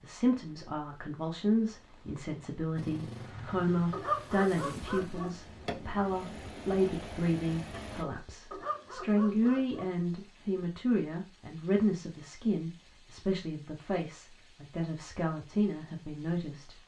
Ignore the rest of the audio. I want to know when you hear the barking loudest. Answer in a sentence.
The loudest moment of the barking is at 4 seconds.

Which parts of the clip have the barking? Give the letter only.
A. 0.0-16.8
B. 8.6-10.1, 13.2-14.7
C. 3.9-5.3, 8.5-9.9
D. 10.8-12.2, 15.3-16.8
C.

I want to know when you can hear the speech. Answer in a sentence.
You can hear the speech from 0.0 to 16.8 s.